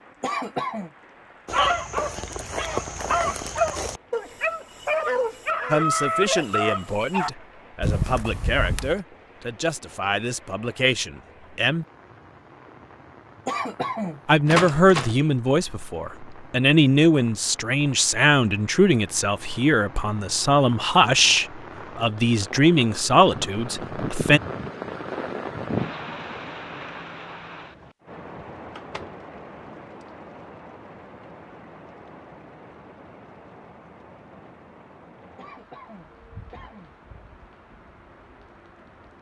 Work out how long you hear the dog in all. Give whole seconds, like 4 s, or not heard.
6 s.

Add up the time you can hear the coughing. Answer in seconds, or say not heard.
3 s.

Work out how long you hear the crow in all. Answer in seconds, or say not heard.
not heard.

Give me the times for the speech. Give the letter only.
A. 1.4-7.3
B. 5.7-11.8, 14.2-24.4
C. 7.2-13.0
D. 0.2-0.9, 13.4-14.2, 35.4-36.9
B.